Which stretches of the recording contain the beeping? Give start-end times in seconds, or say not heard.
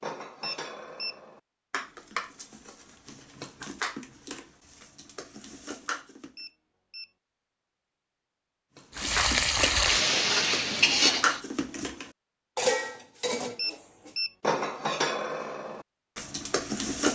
0.4-1.1, 6.3-7.1, 13.6-14.3.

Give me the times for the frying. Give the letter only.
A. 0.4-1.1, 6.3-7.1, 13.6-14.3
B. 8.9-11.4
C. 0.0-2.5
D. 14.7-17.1
B.